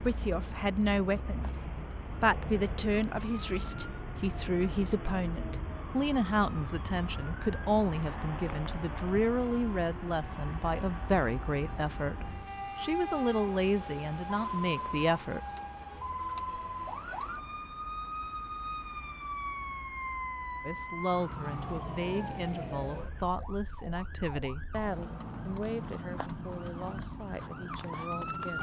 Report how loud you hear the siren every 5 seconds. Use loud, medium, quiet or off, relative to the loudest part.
medium, medium, loud, loud, loud, loud.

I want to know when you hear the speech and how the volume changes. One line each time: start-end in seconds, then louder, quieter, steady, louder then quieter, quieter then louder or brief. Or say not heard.
0.0-15.4 steady
20.6-28.5 quieter.